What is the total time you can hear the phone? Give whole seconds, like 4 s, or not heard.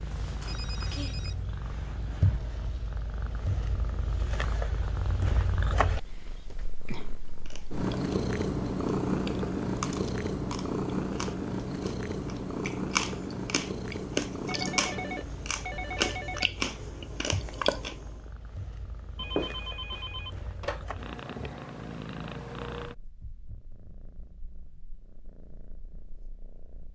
5 s.